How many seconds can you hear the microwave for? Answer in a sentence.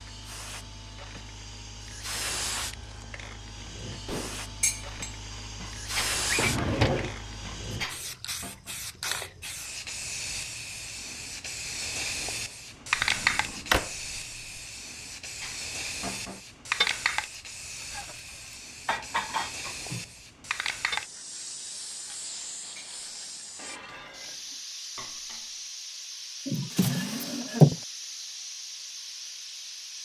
The microwave can't be heard in this clip.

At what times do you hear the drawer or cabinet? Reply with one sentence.
You can hear the drawer or cabinet from 6.3 to 7.2 s, from 12.9 to 13.9 s and from 26.4 to 27.8 s.